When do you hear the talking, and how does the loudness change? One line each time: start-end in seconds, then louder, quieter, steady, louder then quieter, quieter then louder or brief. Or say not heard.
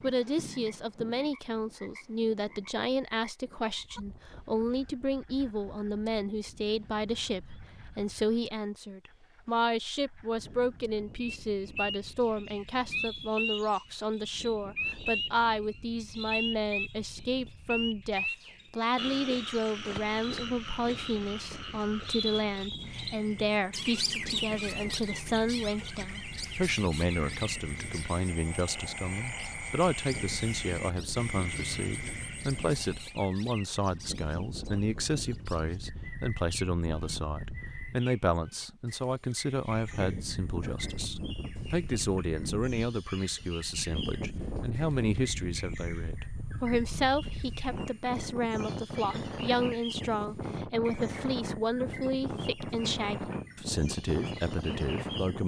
0.0-55.4 steady.